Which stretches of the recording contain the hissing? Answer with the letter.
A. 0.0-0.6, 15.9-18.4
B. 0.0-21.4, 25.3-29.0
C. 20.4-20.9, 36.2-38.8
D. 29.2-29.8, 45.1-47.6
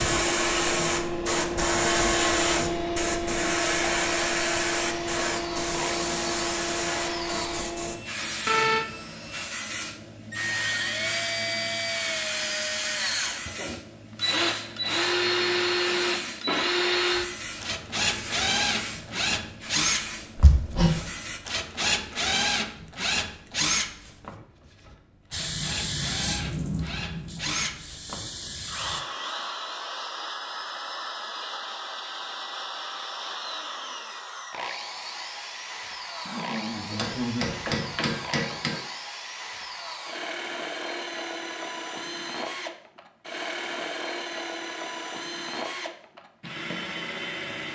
B.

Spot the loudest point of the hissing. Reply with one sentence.
The volume of the hissing peaks at 2 seconds.